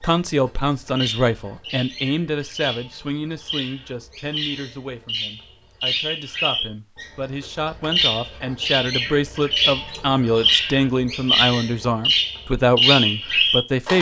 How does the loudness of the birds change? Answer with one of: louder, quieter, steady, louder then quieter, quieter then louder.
louder.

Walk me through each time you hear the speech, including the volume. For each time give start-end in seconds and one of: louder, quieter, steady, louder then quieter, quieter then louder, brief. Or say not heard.
0.0-13.9 quieter then louder.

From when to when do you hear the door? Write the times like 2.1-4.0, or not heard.
not heard.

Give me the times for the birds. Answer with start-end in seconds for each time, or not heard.
0.0-13.9.